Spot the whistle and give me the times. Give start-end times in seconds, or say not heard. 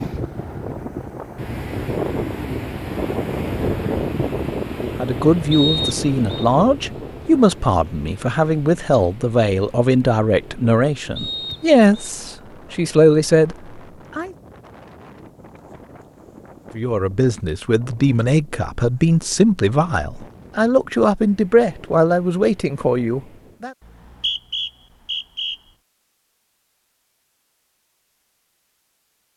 5.5-6.5, 11.2-12.1, 23.9-25.6.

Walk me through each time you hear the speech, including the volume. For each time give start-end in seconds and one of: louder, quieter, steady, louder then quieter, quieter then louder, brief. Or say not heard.
4.8-14.3 steady
16.8-23.7 steady.